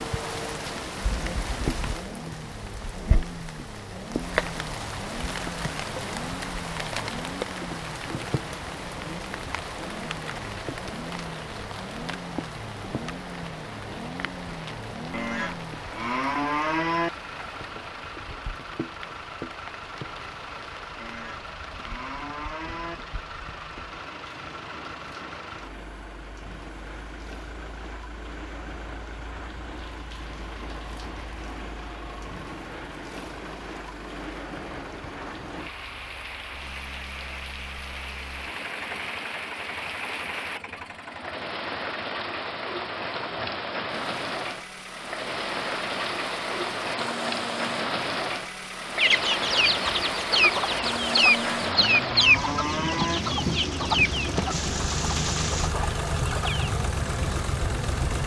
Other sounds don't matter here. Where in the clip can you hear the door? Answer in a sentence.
The door can't be heard in this clip.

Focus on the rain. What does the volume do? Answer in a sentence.
The loudness of the rain goes down, then up.